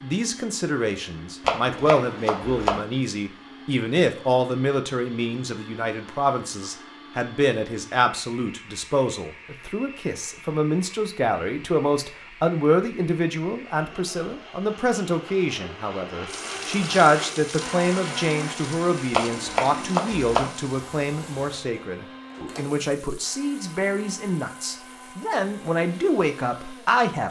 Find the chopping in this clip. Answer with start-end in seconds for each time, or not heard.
1.4-2.9, 19.1-20.5.